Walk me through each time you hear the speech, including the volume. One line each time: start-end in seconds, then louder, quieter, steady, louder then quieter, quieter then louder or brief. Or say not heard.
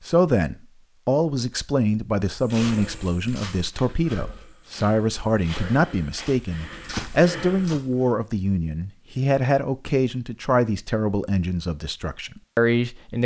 0.0-13.2 steady.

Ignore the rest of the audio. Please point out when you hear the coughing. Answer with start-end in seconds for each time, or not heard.
not heard.